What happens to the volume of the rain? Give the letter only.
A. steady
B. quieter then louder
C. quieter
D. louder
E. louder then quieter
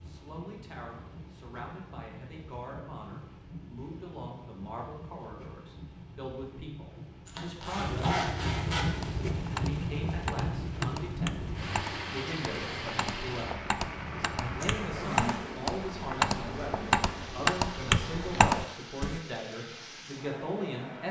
E.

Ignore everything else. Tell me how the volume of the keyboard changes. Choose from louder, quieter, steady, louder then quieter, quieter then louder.
louder.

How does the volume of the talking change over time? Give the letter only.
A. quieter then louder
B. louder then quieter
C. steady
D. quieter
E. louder
E.